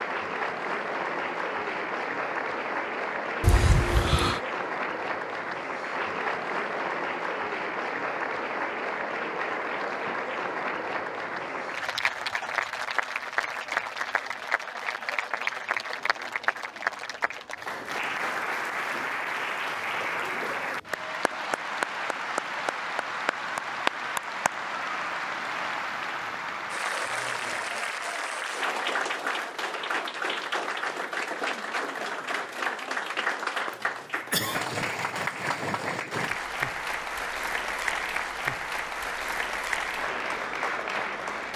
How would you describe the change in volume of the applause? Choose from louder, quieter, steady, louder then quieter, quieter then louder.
steady.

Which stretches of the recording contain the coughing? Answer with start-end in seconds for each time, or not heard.
3.4-4.4, 34.1-34.6.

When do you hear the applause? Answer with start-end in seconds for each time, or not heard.
0.0-41.5.